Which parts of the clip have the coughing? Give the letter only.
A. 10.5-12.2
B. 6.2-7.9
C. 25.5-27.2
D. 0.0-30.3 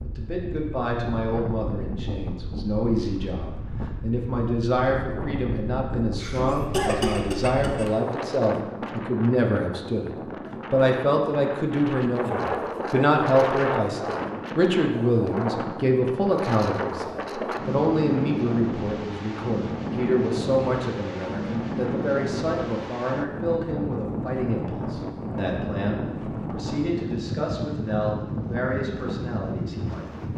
B.